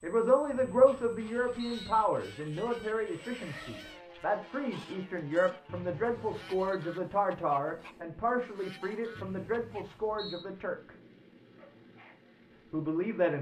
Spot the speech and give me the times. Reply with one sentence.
The speech can be heard from 0.0 to 10.9 s and from 12.7 to 13.3 s.